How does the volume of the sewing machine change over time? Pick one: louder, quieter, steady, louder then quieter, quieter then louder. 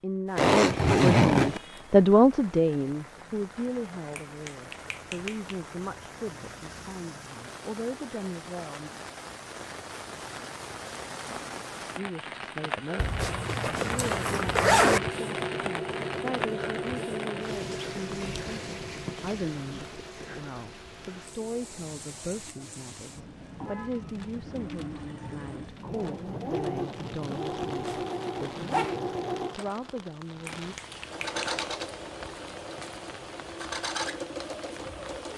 quieter then louder.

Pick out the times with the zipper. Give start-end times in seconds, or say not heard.
0.3-1.6, 12.9-15.0, 27.8-29.0.